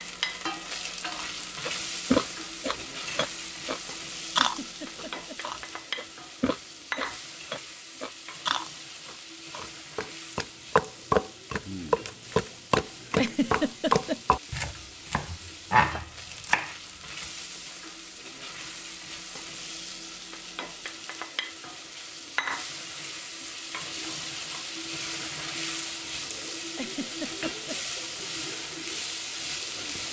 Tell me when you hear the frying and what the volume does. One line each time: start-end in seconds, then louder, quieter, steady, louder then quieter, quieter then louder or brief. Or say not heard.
0.0-30.0 quieter then louder.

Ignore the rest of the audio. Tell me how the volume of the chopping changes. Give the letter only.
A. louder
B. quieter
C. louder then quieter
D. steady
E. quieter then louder
E.